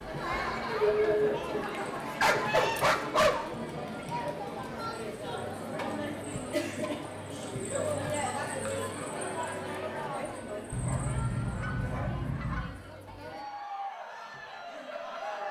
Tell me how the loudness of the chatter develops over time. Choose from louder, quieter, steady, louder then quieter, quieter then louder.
quieter.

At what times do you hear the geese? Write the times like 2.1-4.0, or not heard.
1.7-2.9, 10.7-12.8.